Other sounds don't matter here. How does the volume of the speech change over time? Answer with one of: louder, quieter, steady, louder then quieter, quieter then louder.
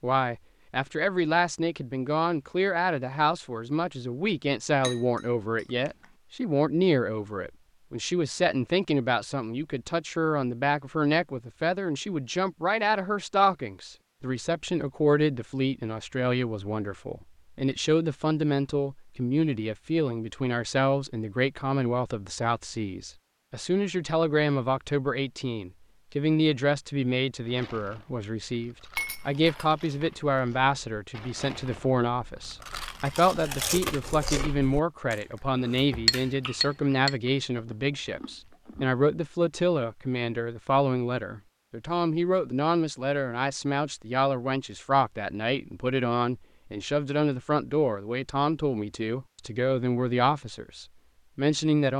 steady.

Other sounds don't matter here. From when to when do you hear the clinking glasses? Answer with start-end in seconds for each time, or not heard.
4.8-6.0, 28.9-30.4, 36.0-37.1.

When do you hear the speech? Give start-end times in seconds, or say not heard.
0.0-51.9.